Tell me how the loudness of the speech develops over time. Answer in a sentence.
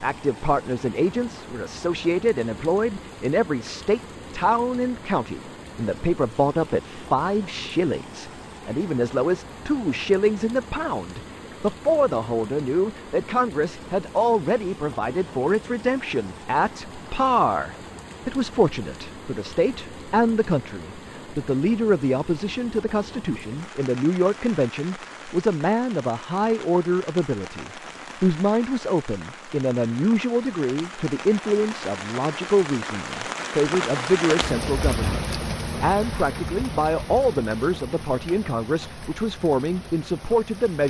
The loudness of the speech stays about the same.